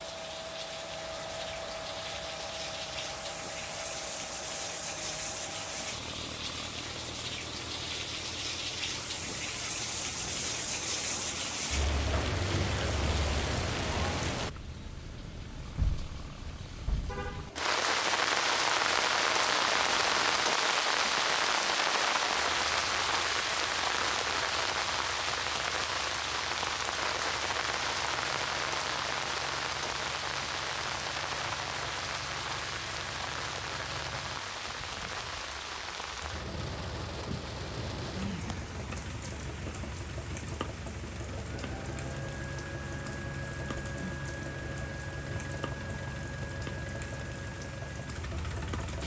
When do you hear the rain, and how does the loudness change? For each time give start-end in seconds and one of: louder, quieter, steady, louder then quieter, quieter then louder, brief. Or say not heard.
0.0-49.0 louder then quieter.